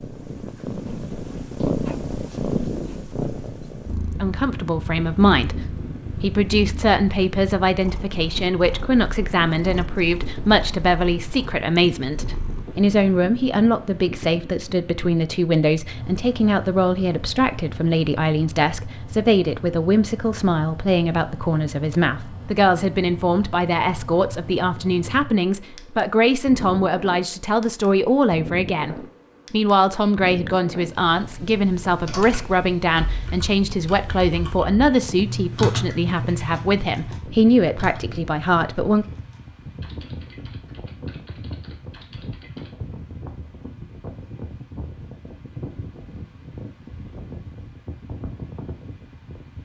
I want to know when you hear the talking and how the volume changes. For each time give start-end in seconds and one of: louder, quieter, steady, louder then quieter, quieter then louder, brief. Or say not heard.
4.2-39.0 steady.